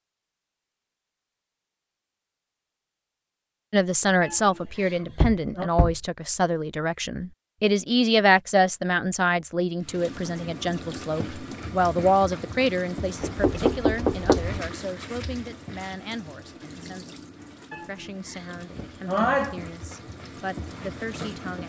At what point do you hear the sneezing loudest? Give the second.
19 s.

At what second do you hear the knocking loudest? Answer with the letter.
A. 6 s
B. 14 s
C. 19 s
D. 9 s
B.